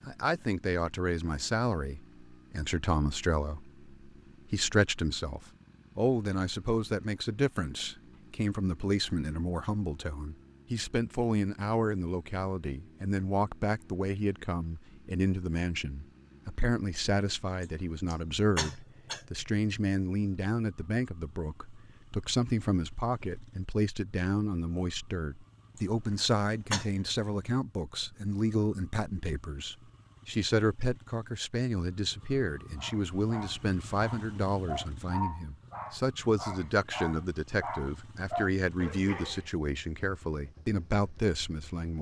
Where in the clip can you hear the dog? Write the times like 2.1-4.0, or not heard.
32.8-39.5.